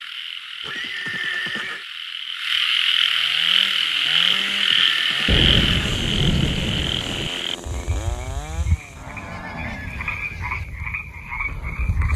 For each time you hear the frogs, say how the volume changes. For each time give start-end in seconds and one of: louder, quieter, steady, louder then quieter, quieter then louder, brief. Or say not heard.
0.0-12.1 louder then quieter.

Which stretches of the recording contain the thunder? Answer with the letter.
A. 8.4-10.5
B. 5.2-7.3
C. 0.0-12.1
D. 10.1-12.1
B.